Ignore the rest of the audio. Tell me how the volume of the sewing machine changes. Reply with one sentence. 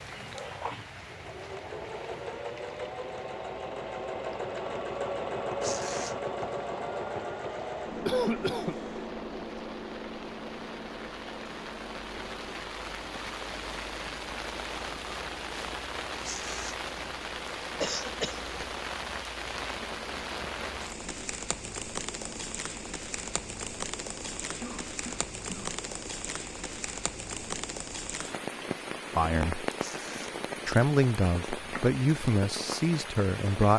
The volume of the sewing machine goes down.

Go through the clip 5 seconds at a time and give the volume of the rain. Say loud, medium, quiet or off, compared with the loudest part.
medium, quiet, loud, loud, loud, loud, loud.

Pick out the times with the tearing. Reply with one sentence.
You can hear the tearing from 5.6 to 6.2 s, from 16.2 to 16.8 s and from 29.8 to 30.3 s.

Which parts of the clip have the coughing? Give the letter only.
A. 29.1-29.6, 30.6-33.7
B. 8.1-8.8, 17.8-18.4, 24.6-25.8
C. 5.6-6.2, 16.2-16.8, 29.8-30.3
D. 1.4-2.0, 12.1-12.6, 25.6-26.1
B.